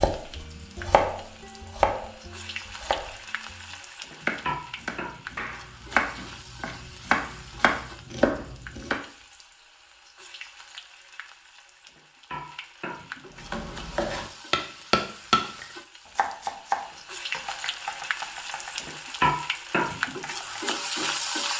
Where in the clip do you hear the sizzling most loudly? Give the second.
20 s.